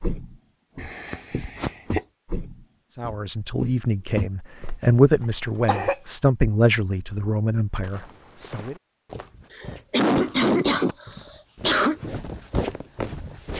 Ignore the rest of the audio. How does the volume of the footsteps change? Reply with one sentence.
The volume of the footsteps goes down, then up.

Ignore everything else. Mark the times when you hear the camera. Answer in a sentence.
The camera can't be heard in this clip.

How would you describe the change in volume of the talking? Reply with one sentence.
The loudness of the talking goes up, then down.